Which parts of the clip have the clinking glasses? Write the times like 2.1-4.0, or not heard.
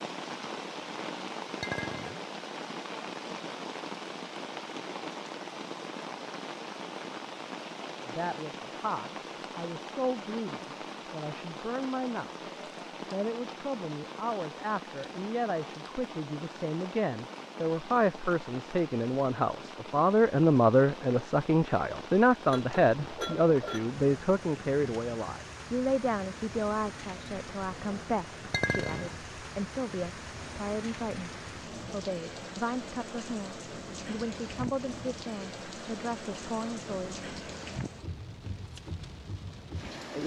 1.6-2.2, 22.5-23.9, 28.5-29.1.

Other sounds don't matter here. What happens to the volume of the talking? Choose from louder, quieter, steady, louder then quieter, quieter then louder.
louder then quieter.